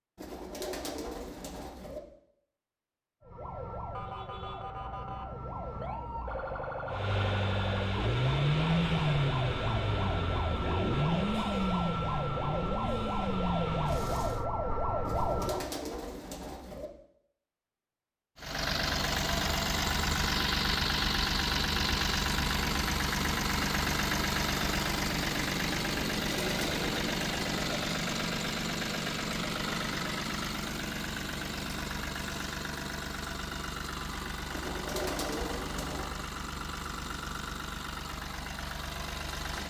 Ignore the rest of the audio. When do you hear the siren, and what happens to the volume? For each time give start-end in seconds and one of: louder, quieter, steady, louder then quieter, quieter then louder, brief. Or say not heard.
3.2-15.7 louder.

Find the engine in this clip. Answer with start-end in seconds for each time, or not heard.
6.8-14.4, 18.4-39.6.